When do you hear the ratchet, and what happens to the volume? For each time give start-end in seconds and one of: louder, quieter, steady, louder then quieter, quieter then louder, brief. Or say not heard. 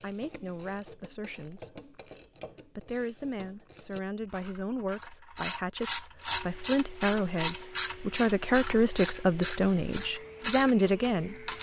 0.0-11.5 louder.